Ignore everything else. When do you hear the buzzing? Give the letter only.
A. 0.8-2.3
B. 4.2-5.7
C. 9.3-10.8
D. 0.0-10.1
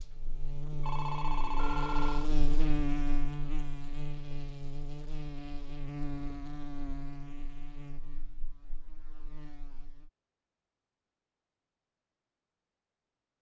D.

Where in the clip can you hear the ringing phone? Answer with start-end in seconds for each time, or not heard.
0.8-2.3.